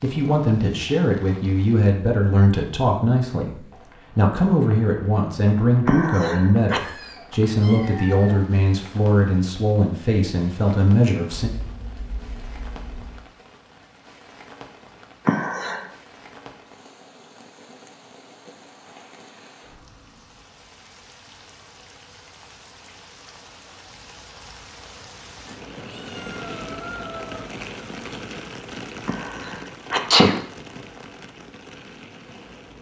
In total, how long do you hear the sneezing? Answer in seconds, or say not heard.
3 s.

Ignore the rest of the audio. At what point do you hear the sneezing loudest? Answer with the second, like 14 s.
30 s.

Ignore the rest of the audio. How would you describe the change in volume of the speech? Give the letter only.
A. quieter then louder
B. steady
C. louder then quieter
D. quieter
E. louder
B.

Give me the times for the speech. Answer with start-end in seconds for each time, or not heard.
0.0-11.5.